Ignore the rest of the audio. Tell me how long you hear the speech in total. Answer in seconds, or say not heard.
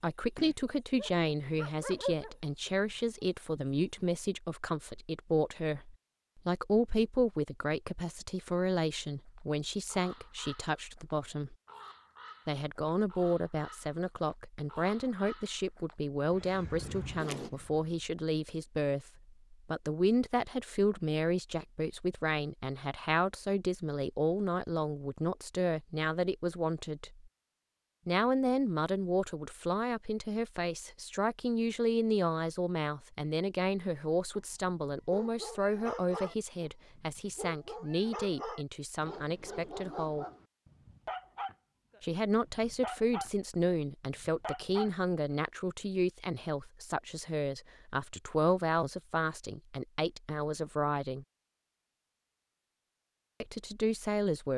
49 s.